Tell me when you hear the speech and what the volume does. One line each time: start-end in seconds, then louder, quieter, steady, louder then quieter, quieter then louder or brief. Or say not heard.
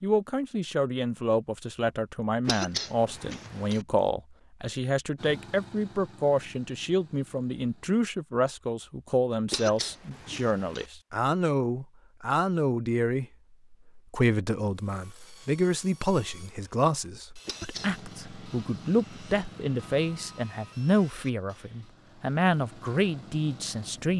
0.0-24.1 steady.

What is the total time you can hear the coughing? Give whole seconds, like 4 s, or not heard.
3 s.